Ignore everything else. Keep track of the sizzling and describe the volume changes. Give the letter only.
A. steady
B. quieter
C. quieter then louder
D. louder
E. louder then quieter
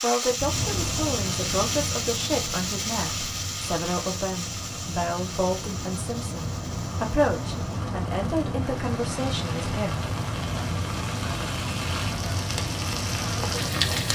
C.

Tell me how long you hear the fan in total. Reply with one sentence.
The fan can be heard for 14 seconds in total.